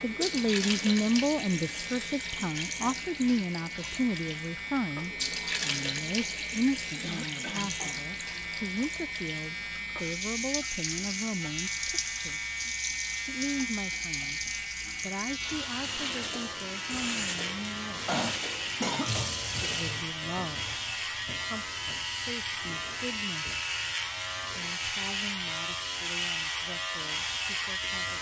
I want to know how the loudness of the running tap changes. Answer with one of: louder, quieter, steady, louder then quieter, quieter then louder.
steady.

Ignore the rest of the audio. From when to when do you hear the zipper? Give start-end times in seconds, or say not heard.
not heard.